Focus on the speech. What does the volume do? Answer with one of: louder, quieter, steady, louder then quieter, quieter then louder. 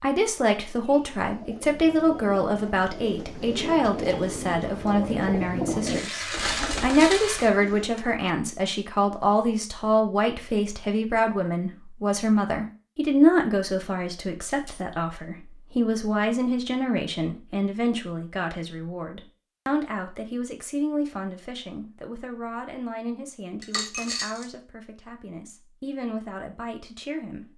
quieter.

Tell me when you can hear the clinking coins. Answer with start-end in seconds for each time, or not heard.
5.8-7.5, 14.4-14.8, 23.6-24.5.